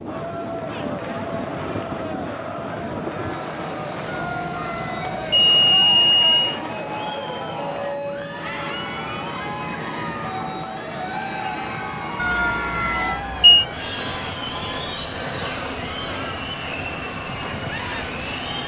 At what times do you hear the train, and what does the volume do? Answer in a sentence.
You can hear the train from 0.0 to 18.6 s, at a steady volume.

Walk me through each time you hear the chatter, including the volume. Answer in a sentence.
The chatter can be heard from 0.0 to 18.6 s, at a steady volume.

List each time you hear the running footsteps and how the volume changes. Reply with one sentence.
The running footsteps can't be heard in this clip.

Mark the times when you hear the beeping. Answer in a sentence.
The beeping can be heard from 4.1 to 6.5 s and from 12.2 to 13.7 s.